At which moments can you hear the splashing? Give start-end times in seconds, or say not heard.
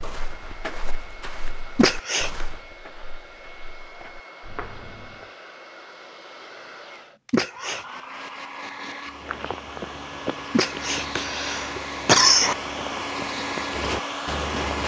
not heard.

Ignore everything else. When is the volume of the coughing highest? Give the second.
12 s.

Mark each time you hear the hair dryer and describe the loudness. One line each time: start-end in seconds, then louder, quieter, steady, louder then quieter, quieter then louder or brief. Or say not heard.
0.0-14.8 louder.